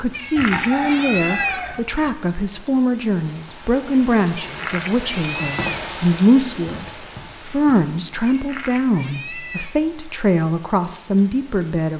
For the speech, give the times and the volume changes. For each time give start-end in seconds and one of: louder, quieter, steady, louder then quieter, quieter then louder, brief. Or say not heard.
0.0-11.9 steady.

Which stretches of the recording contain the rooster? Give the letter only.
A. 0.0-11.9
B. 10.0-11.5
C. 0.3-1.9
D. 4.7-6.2
C.